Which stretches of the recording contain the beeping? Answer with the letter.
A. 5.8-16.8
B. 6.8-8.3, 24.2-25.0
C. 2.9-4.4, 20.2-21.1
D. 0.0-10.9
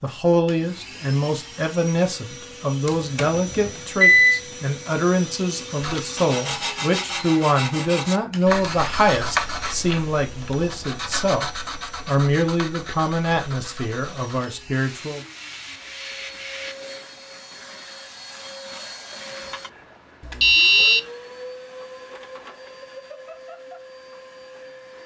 C.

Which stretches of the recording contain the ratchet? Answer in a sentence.
The ratchet can't be heard in this clip.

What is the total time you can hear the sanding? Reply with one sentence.
You can hear the sanding for 11 seconds altogether.